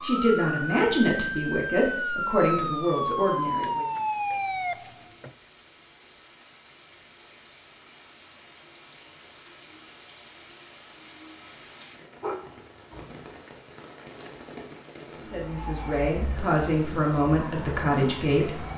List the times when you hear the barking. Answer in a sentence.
The barking can be heard from 12.2 to 13.3 s.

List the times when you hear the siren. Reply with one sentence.
You can hear the siren from 0.0 to 5.3 s and from 15.4 to 18.7 s.